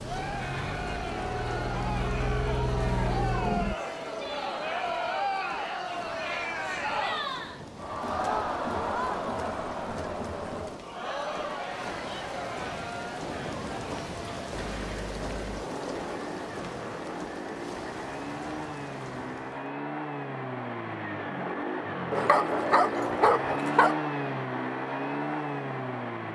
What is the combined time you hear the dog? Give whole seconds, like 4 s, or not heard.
2 s.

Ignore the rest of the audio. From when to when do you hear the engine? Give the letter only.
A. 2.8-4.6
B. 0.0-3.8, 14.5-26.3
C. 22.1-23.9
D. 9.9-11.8
B.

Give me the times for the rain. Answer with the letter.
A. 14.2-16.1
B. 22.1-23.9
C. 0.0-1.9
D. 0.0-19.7
D.